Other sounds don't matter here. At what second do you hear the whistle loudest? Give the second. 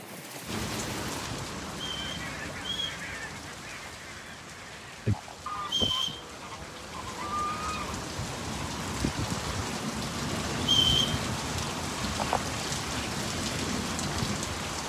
11 s.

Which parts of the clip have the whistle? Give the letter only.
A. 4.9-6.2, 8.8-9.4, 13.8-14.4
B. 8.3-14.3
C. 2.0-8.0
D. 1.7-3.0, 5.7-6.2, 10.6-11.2
D.